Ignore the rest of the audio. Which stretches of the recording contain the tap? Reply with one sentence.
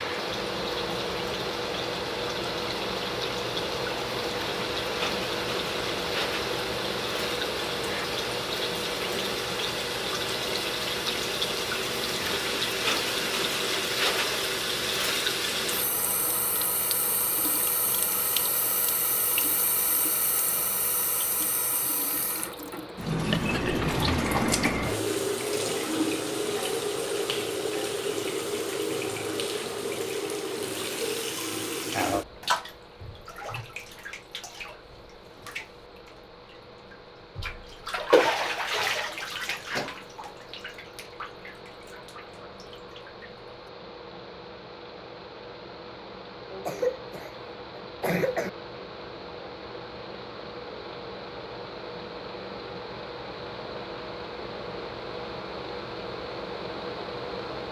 The tap can be heard from 0.0 to 43.3 s.